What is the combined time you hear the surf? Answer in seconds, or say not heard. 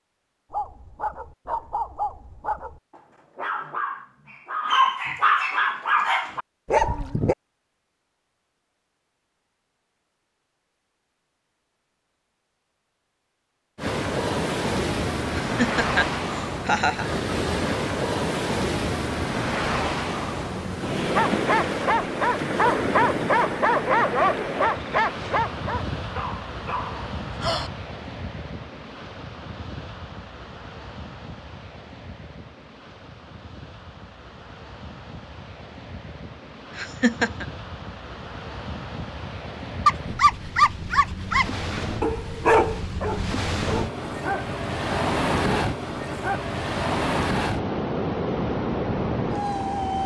36 s.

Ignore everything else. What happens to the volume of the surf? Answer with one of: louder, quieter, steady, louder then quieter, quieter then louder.
quieter then louder.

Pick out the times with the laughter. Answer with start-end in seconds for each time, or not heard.
15.3-17.1, 36.8-37.5.